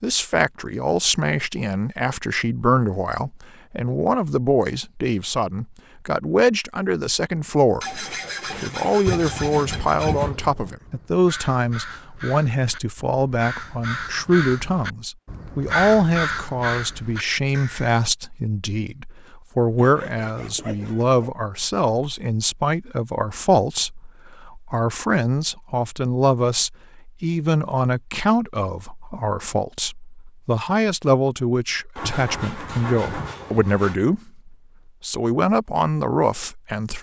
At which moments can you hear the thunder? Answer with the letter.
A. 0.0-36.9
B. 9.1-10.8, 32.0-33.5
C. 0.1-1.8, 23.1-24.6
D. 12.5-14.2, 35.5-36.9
B.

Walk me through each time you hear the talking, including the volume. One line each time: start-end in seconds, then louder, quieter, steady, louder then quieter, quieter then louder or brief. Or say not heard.
0.0-36.9 steady.